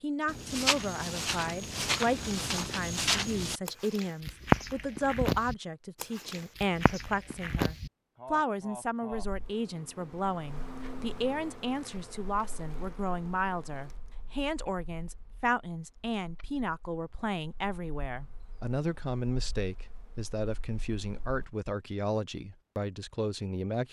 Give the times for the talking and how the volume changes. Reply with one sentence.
You can hear the talking from 0.0 to 23.8 s, at a steady volume.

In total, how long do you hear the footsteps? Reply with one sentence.
You can hear the footsteps for 8 seconds altogether.